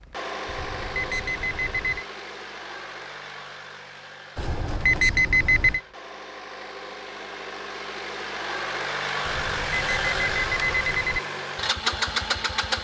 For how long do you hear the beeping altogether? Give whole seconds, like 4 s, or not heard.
5 s.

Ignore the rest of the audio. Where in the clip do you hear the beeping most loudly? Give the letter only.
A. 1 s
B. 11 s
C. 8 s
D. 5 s
D.